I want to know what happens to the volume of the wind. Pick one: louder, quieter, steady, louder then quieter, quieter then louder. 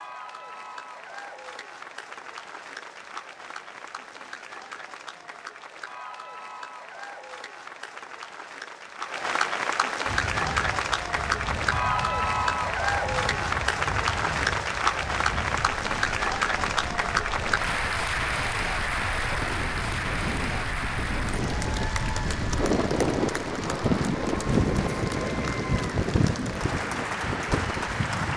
louder.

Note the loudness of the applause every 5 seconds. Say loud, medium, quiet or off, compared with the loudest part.
quiet, medium, loud, loud, medium, medium.